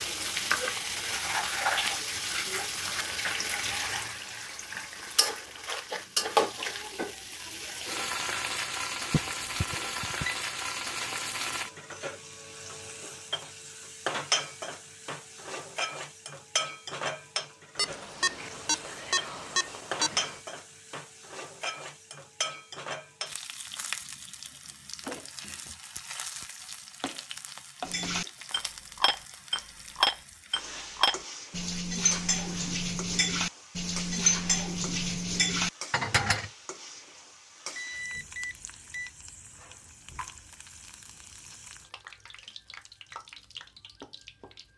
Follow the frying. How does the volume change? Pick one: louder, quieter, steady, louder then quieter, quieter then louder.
quieter.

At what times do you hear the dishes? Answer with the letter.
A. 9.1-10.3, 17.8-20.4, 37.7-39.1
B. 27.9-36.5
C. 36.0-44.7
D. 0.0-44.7
B.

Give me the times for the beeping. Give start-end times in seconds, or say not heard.
9.1-10.3, 17.8-20.4, 37.7-39.1.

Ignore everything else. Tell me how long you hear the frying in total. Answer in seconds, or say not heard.
45 s.